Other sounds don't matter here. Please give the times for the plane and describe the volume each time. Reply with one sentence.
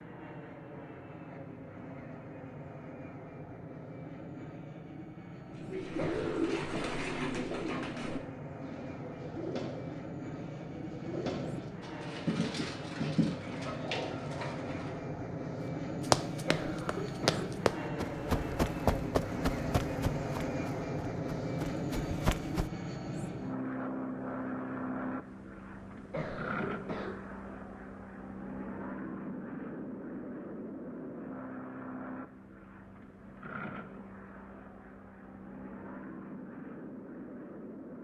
The plane can be heard from 0.0 to 38.0 s, getting louder then quieter.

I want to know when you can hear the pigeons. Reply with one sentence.
You can hear the pigeons from 5.5 to 14.9 s.